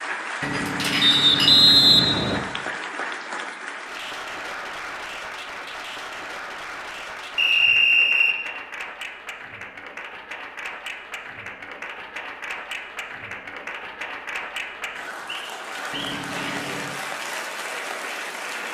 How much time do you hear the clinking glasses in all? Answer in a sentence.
You can hear the clinking glasses for 3 seconds altogether.